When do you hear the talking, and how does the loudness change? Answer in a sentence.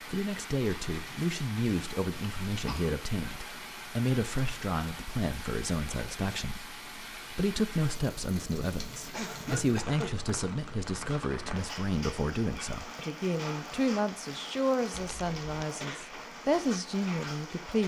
The talking can be heard from 0.1 to 17.8 s, at a steady volume.